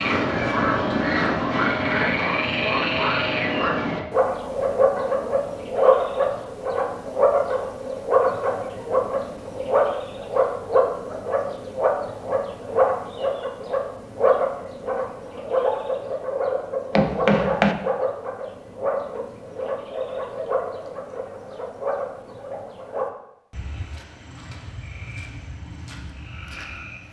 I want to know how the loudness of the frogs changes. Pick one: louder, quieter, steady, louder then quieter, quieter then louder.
quieter.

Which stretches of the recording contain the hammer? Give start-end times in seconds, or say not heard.
16.9-17.8.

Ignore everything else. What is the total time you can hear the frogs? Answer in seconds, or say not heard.
27 s.